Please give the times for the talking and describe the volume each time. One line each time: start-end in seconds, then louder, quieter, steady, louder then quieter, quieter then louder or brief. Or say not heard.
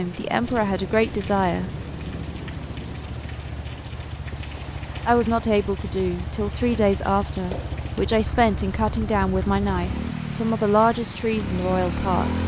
0.0-1.7 brief
5.0-12.3 steady.